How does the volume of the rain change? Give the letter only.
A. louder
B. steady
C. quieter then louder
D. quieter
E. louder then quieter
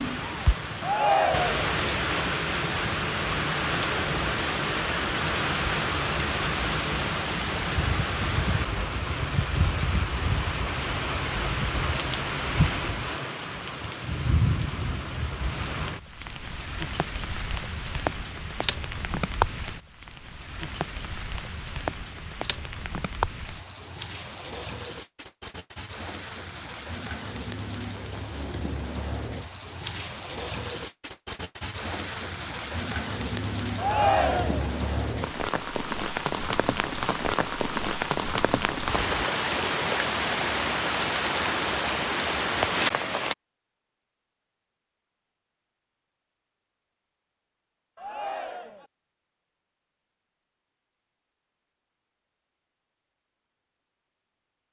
C.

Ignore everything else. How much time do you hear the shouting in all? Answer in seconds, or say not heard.
3 s.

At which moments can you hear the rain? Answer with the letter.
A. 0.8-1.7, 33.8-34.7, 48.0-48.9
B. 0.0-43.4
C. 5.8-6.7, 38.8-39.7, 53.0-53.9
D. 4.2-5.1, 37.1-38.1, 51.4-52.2
B.